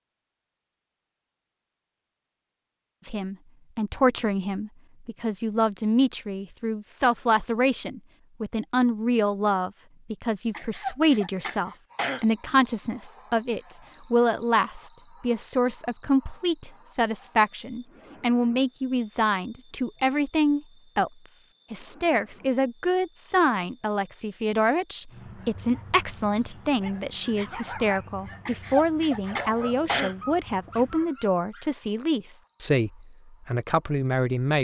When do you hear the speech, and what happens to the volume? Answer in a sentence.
You can hear the speech from 3.0 to 34.5 s, at a steady volume.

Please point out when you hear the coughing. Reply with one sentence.
You can hear the coughing from 10.5 to 12.2 s and from 28.4 to 30.1 s.